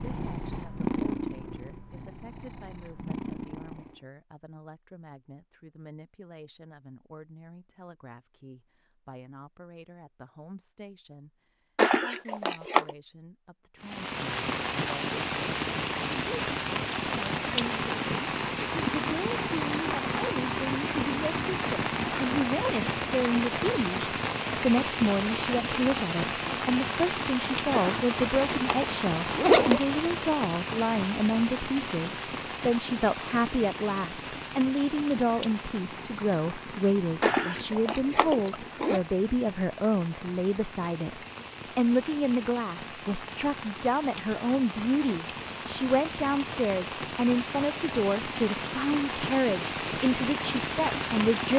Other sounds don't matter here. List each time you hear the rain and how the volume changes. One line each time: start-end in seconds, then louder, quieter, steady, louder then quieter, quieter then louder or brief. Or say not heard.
13.8-51.5 quieter then louder.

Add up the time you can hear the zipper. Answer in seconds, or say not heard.
5 s.